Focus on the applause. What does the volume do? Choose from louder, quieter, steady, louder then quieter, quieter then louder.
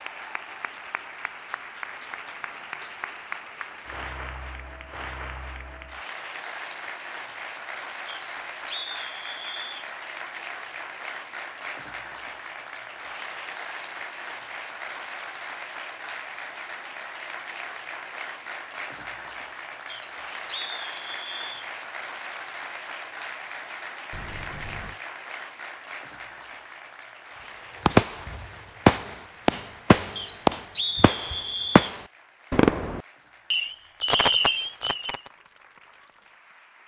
quieter.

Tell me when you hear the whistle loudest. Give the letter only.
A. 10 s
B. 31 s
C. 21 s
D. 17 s
B.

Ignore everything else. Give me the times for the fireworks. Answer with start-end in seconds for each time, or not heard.
27.9-35.2.